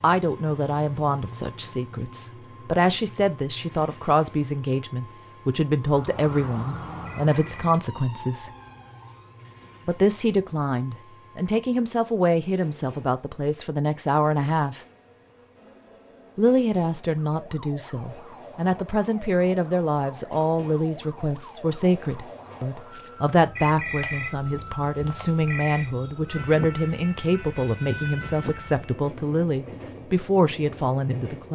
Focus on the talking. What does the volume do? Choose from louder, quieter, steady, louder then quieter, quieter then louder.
steady.